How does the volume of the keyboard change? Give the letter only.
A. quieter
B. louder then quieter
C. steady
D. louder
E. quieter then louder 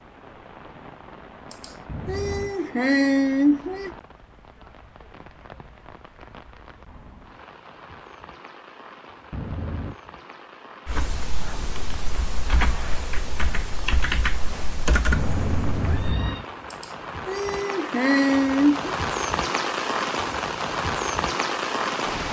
D.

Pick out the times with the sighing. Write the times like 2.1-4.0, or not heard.
1.5-3.9, 16.7-18.9.